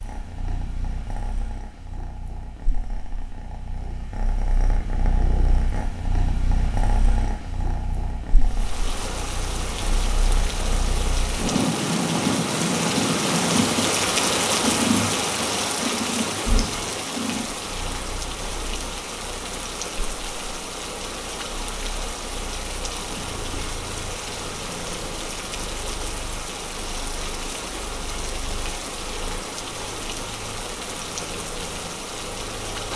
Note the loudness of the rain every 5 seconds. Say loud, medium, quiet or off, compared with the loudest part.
off, medium, loud, loud, medium, medium, medium.